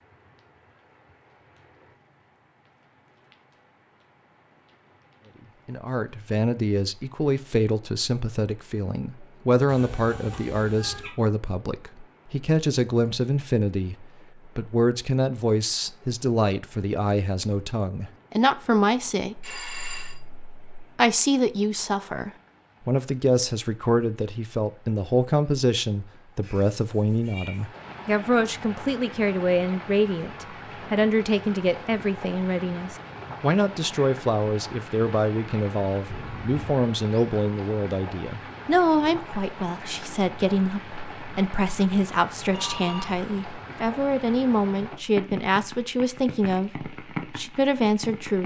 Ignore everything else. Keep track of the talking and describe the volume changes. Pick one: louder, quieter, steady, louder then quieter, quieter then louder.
steady.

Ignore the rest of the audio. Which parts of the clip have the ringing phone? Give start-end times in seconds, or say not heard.
19.4-20.1, 42.5-43.2.